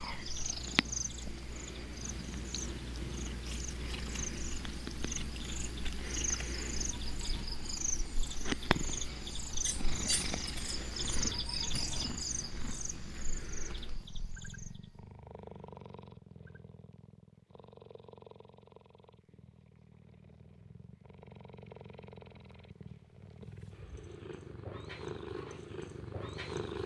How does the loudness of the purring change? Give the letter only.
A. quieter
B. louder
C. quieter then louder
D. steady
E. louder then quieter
C.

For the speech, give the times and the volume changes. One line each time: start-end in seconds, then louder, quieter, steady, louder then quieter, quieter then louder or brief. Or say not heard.
not heard.